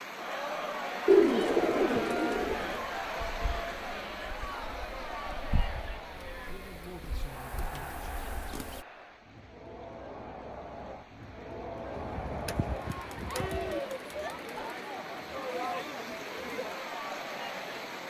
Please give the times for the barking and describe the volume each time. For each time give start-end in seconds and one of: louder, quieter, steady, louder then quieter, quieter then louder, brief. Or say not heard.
not heard.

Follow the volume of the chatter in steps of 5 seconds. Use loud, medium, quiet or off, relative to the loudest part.
loud, medium, loud, loud.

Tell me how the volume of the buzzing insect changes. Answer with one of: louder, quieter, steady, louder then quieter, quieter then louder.
louder.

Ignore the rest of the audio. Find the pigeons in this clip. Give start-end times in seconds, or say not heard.
1.1-2.8, 11.9-13.8.